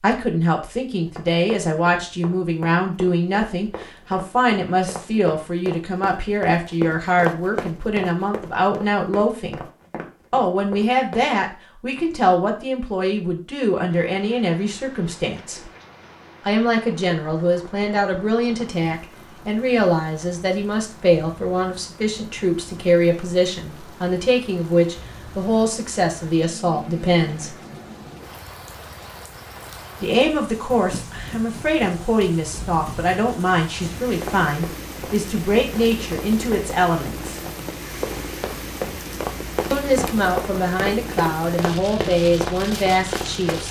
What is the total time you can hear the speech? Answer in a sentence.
You can hear the speech for 37 seconds altogether.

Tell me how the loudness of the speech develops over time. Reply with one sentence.
The loudness of the speech stays about the same.